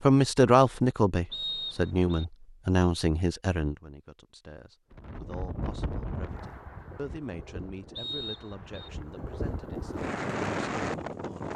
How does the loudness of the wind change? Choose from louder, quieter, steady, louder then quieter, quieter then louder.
quieter then louder.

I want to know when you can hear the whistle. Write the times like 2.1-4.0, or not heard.
1.3-2.2, 8.0-8.9.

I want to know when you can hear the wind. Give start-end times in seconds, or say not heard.
4.9-11.5.